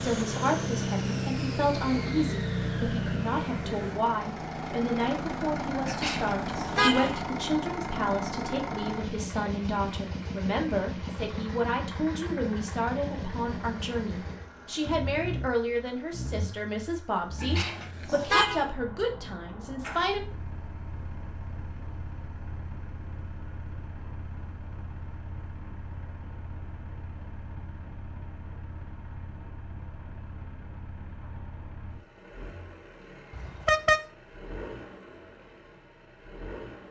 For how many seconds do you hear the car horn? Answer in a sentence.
You can hear the car horn for 3 seconds altogether.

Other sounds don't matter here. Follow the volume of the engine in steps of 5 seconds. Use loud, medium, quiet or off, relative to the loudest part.
loud, loud, medium, medium, quiet, quiet, quiet, quiet.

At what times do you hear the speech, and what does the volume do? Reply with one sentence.
You can hear the speech from 0.0 to 20.2 s, at a steady volume.